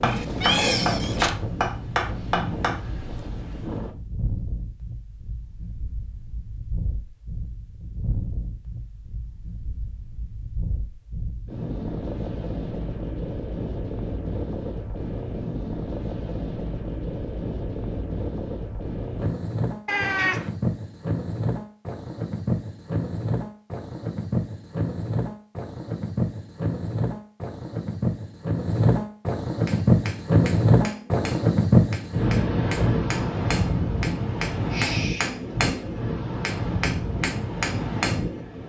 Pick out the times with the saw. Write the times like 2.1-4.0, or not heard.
not heard.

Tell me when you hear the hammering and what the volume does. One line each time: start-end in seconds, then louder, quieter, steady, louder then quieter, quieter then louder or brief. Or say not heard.
0.0-2.8 brief
29.6-38.5 louder.